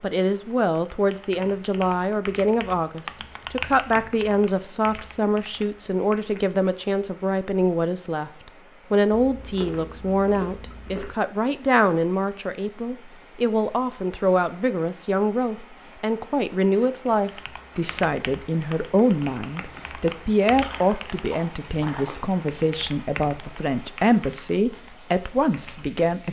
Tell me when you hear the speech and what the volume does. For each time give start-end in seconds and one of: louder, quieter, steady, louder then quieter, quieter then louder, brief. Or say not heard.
0.0-26.2 steady.